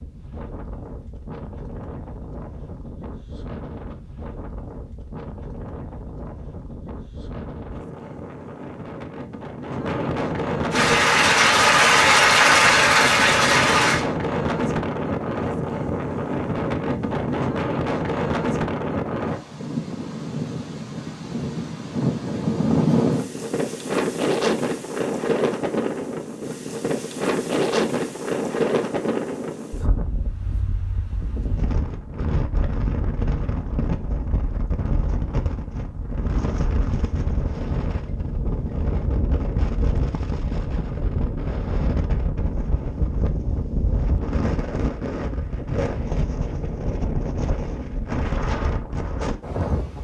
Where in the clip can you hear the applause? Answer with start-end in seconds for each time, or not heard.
10.7-14.1.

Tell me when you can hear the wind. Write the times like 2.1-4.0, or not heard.
0.0-49.9.